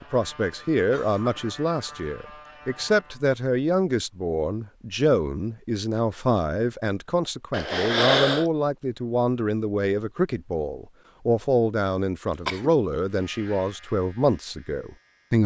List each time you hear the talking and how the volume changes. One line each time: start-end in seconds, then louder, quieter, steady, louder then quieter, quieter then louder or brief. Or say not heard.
0.0-15.4 steady.